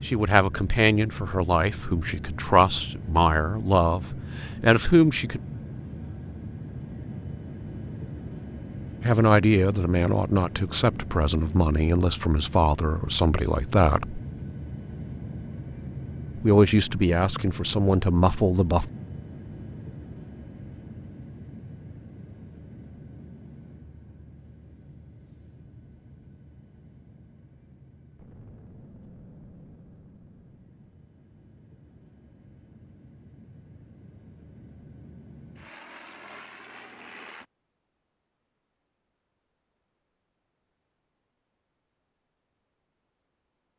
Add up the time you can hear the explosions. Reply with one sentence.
The explosions can be heard for 3 seconds in total.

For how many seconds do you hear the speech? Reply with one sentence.
You can hear the speech for 13 seconds altogether.